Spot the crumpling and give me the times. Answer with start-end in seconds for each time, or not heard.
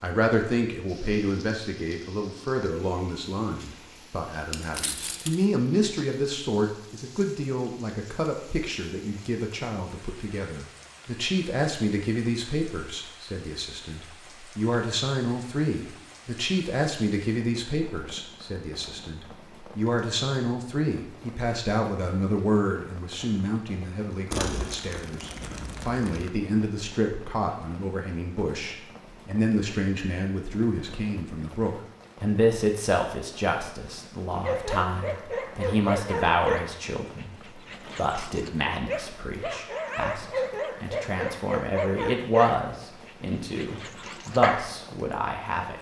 4.5-5.5, 24.3-26.3.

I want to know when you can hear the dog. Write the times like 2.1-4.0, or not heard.
34.4-44.8.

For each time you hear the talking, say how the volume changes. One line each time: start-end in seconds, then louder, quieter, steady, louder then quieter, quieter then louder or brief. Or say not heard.
0.0-45.7 steady.